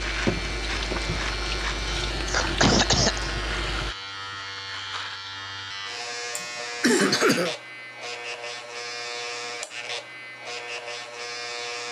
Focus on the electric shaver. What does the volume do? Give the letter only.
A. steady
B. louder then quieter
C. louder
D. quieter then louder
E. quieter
A.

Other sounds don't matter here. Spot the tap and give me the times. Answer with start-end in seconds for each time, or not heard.
0.0-4.0.